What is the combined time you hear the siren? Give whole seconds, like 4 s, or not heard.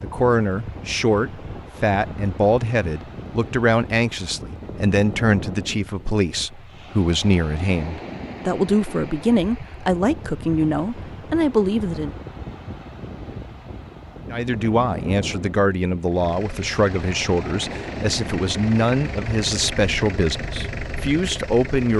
not heard.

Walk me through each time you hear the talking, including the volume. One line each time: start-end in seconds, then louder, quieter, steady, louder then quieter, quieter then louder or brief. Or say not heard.
0.0-12.2 steady
14.3-21.9 steady.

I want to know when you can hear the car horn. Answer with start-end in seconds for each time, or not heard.
not heard.